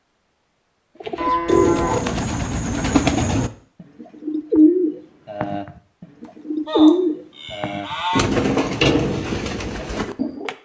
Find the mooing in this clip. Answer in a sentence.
You can hear the mooing from 1.1 to 2.0 s and from 6.7 to 8.2 s.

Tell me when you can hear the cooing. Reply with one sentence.
The cooing can be heard from 1.0 to 10.6 s.